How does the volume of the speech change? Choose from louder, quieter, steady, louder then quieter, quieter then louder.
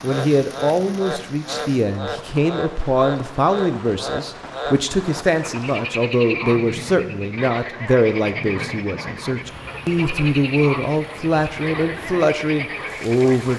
steady.